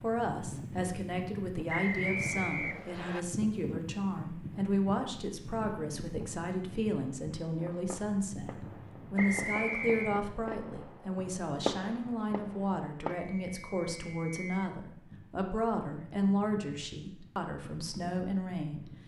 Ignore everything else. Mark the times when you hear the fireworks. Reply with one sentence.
You can hear the fireworks from 7.5 to 13.2 s.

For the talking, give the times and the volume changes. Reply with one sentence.
The talking can be heard from 0.0 to 18.9 s, at a steady volume.